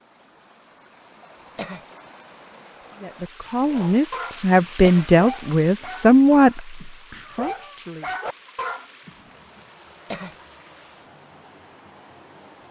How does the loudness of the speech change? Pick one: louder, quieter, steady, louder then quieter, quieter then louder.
louder then quieter.